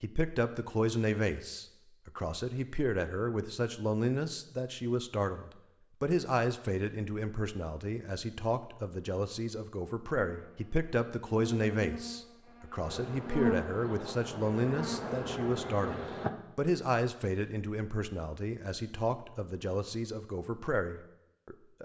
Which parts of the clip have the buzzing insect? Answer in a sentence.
The buzzing insect can be heard from 10.2 to 16.3 s.